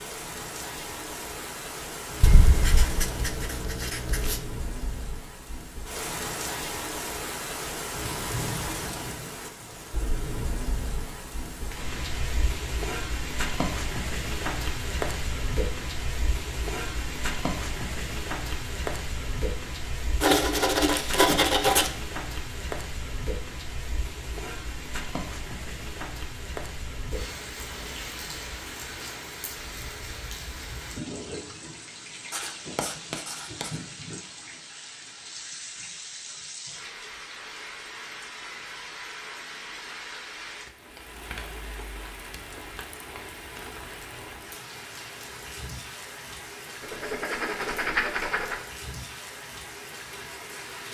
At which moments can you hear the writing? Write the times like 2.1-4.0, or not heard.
2.2-4.4, 20.2-21.9, 32.3-33.8, 46.8-48.6.